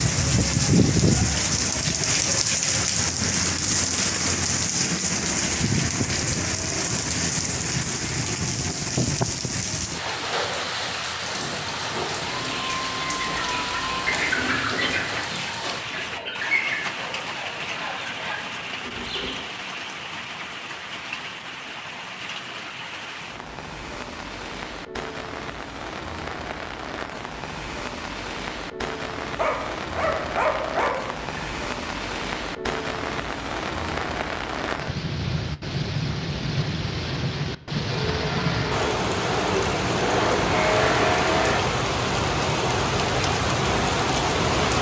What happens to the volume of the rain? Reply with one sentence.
The loudness of the rain goes down, then up.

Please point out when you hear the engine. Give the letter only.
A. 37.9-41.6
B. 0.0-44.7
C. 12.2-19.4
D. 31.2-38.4
A.